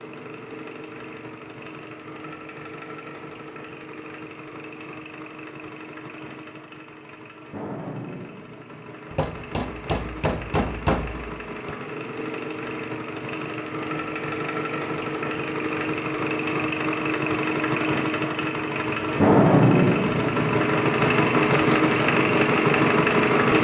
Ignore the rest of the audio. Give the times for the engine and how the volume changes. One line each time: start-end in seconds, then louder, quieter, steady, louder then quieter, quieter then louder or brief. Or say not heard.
0.0-23.5 louder.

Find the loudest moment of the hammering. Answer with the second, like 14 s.
11 s.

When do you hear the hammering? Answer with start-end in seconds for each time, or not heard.
9.1-11.8.